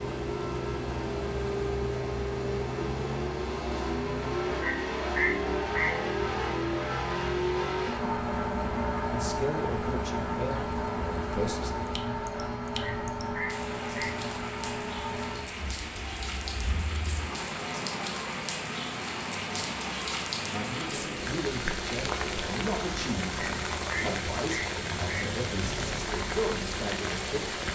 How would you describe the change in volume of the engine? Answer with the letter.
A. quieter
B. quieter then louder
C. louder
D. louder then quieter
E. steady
A.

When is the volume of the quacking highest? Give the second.
5 s.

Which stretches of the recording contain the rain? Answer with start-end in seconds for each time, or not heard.
0.0-27.7.